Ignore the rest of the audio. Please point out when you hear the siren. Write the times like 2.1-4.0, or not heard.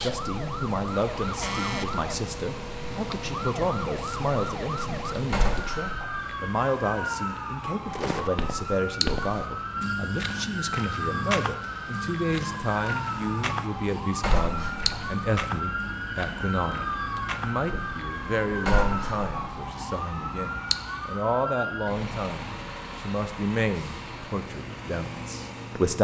0.0-21.9.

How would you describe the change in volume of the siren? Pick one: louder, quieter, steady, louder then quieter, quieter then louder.
steady.